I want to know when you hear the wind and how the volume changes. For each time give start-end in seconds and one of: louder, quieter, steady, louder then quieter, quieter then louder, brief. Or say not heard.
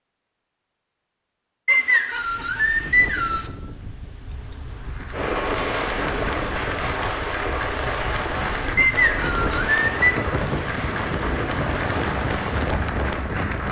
2.1-13.6 louder.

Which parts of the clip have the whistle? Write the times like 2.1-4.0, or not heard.
1.6-3.5, 8.8-10.2.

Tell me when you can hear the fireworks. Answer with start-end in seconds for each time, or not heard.
5.1-12.7.